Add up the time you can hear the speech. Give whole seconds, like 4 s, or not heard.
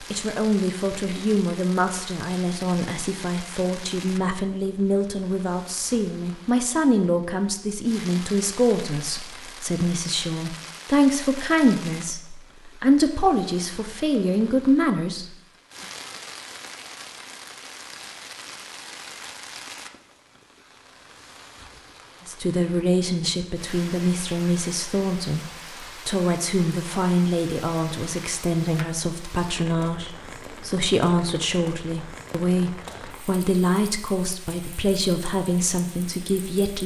30 s.